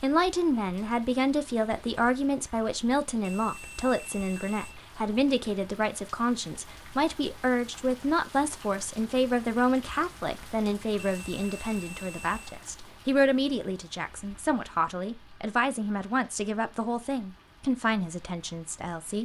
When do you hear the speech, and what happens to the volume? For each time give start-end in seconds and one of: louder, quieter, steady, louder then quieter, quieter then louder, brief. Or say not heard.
0.0-19.1 steady.